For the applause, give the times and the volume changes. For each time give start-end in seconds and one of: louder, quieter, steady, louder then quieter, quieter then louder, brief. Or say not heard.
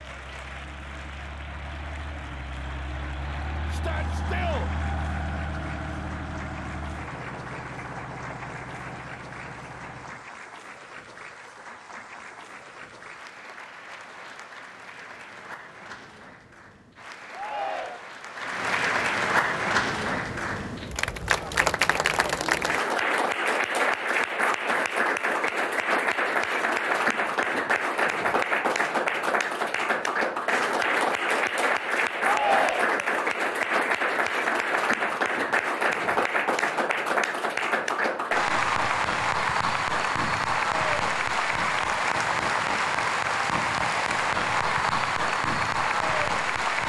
0.0-46.8 louder.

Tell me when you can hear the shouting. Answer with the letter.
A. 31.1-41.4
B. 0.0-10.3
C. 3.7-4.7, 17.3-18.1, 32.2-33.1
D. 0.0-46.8
C.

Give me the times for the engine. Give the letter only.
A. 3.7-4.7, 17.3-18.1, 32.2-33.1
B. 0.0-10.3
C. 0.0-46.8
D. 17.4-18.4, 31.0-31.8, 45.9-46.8
B.